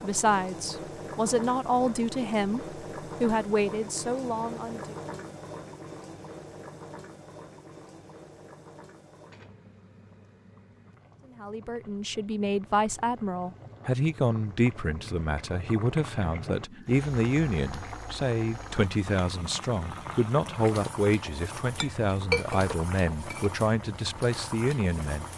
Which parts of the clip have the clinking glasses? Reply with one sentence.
You can hear the clinking glasses from 21.6 to 23.5 s.